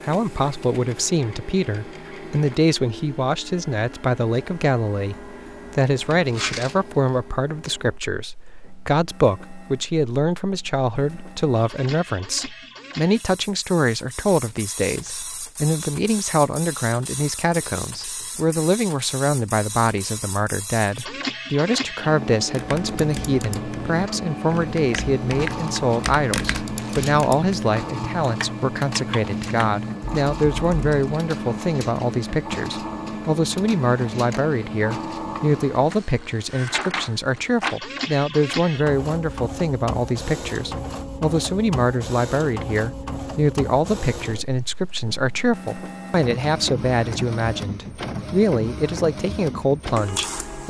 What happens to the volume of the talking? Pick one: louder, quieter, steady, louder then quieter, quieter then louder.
steady.